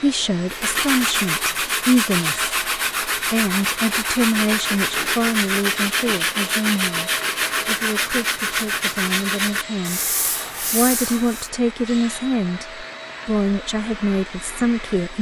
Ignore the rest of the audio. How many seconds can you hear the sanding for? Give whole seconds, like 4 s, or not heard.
11 s.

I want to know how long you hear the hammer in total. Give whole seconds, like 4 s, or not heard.
not heard.